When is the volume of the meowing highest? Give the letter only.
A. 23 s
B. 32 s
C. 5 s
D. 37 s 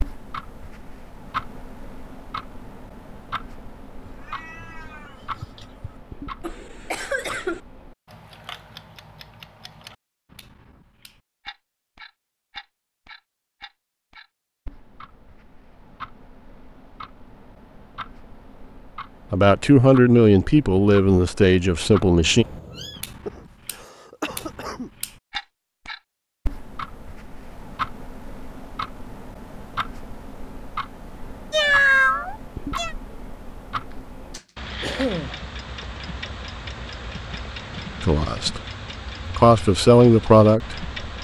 B.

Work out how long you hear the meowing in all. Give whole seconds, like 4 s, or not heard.
4 s.